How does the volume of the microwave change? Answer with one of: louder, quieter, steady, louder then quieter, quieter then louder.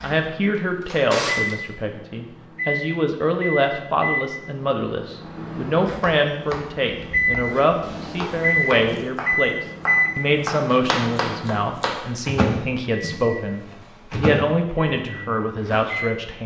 louder then quieter.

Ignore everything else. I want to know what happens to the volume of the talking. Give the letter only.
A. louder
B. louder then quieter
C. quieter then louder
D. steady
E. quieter
D.